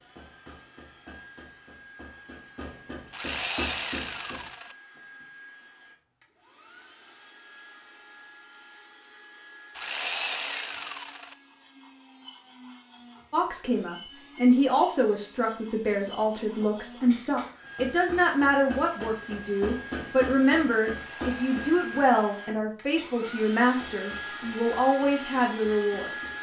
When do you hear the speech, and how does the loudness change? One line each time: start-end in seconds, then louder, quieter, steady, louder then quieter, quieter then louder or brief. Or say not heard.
13.3-26.1 steady.